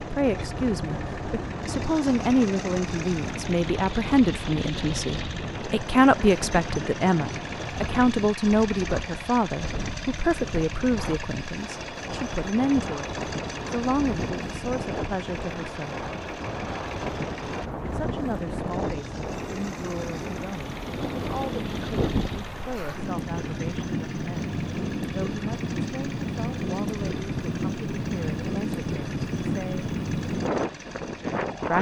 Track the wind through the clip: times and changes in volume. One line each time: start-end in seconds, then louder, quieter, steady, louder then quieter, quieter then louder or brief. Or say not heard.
0.0-31.7 louder.